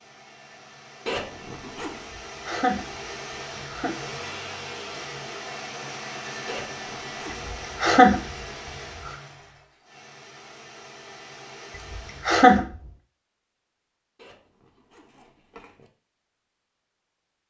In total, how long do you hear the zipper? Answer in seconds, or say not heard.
4 s.